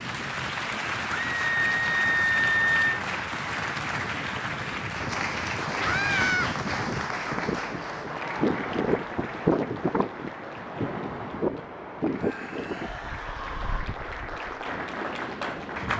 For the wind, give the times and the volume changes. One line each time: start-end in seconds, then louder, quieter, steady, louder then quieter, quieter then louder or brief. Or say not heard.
0.0-15.9 louder then quieter.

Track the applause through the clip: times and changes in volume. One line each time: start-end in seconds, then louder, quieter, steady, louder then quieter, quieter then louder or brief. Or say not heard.
0.0-15.9 quieter then louder.